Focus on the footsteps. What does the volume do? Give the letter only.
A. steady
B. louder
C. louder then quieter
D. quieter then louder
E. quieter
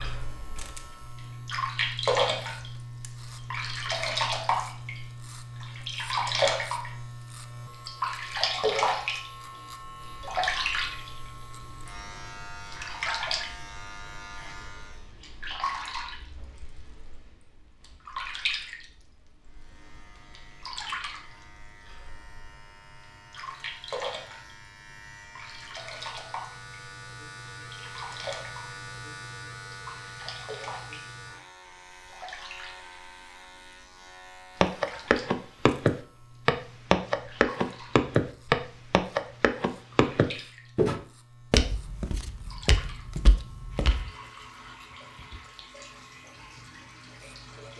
E.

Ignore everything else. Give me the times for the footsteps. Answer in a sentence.
You can hear the footsteps from 34.6 to 44.0 s.